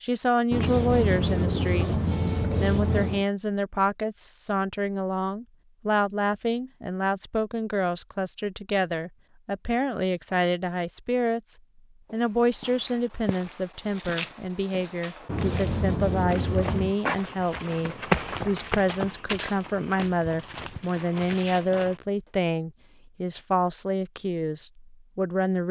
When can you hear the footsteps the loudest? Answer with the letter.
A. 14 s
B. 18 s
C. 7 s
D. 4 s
B.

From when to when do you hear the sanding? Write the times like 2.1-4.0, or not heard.
0.5-3.2, 15.2-16.9.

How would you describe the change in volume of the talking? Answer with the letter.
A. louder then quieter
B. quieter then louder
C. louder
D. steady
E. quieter
D.